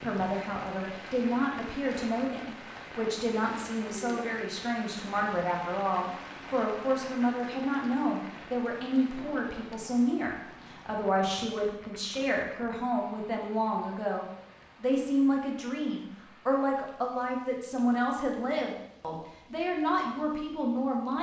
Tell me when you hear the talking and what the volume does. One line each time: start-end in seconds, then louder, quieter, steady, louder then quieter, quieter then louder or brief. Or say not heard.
0.0-21.1 steady.